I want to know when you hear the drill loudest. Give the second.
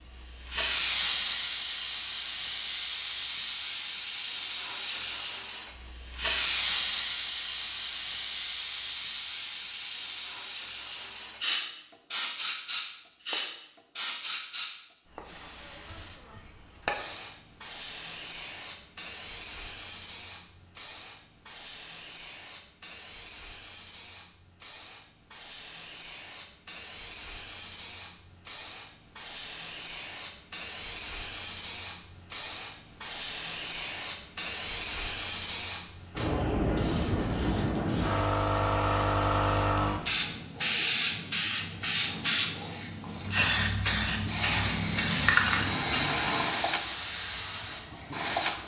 45 s.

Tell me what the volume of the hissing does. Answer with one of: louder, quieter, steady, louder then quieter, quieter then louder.
quieter then louder.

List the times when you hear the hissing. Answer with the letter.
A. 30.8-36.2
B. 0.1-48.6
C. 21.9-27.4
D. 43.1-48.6
B.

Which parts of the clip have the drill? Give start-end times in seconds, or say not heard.
43.1-48.6.